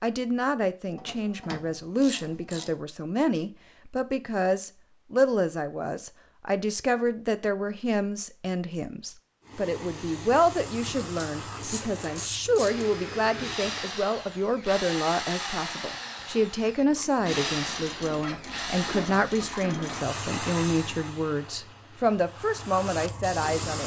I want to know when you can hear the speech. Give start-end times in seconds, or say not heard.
0.0-23.8.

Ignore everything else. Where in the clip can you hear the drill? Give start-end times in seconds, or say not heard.
12.6-19.6.